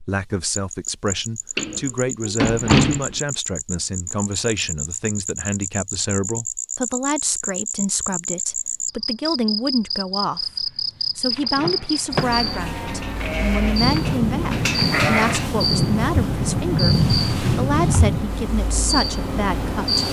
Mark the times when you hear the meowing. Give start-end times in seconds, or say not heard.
not heard.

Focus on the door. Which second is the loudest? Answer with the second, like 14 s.
3 s.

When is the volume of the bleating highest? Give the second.
15 s.